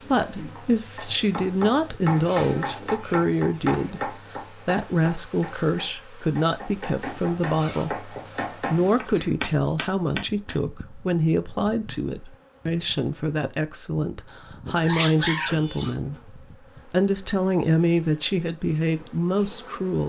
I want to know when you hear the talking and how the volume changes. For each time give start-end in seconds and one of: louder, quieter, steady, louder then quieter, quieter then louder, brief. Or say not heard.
0.1-20.0 steady.